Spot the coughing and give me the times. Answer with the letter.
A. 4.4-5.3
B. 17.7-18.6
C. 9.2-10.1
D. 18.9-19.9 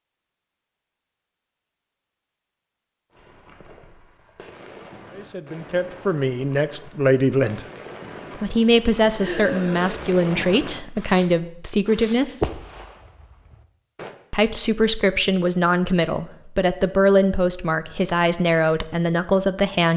C.